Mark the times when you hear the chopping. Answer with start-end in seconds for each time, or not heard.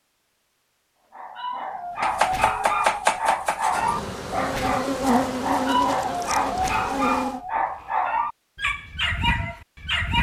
2.0-3.9.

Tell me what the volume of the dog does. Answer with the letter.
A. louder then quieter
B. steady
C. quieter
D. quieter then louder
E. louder
B.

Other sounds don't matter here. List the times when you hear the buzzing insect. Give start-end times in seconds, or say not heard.
3.6-7.4.